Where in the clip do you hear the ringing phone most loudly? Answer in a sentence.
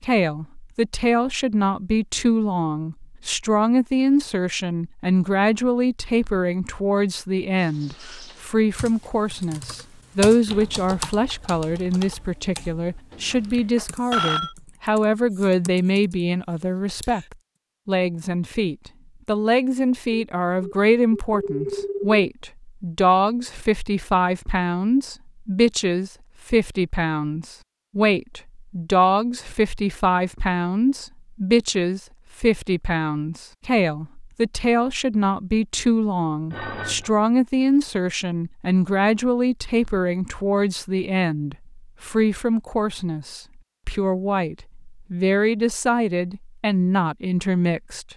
The loudest moment of the ringing phone is at 14 seconds.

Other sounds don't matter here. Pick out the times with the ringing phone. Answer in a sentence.
You can hear the ringing phone from 13.1 to 14.6 s, from 20.1 to 22.2 s and from 36.5 to 37.1 s.